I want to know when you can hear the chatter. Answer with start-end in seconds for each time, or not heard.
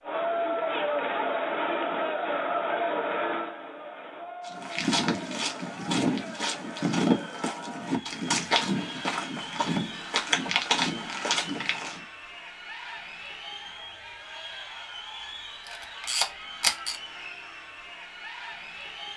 0.0-19.1.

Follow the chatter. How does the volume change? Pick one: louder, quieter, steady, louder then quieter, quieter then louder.
quieter.